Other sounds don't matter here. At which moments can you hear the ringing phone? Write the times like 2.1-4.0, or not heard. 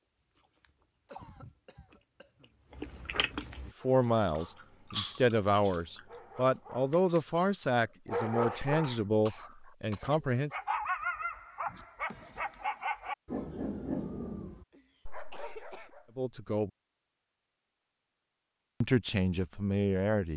not heard.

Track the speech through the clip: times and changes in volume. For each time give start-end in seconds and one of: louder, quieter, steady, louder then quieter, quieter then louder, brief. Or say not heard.
3.6-10.5 steady
16.1-16.7 brief
18.8-20.3 brief.